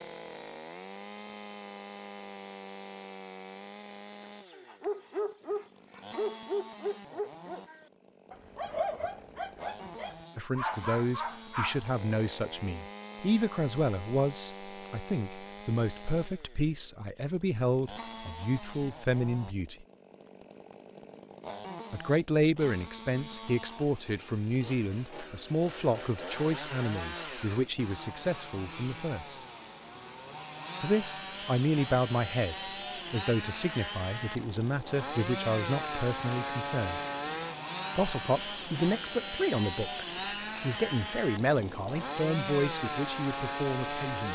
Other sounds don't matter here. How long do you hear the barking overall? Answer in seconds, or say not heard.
7 s.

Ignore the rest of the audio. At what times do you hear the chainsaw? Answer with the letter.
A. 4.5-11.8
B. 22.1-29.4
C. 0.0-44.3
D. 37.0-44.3
C.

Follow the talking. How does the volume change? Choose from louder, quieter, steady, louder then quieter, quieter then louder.
steady.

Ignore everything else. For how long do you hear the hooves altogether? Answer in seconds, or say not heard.
not heard.